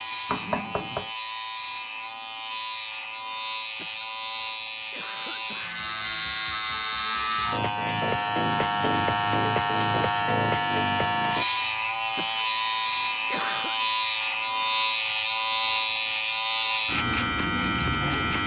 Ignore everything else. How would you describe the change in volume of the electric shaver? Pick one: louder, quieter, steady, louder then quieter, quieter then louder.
louder.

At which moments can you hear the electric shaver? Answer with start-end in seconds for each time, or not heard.
0.0-18.4.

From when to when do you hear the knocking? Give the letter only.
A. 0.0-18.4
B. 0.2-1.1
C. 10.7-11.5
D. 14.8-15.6
B.